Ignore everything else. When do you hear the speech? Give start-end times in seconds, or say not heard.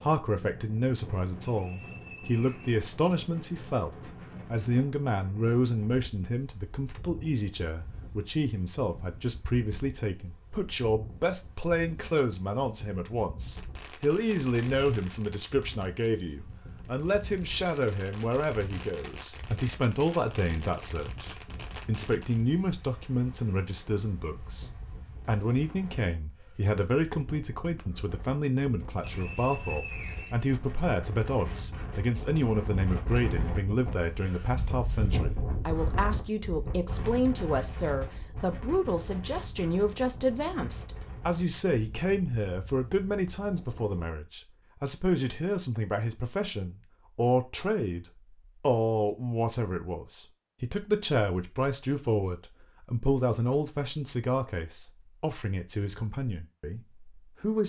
0.0-57.6.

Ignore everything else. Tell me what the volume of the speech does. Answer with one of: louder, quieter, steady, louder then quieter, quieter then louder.
steady.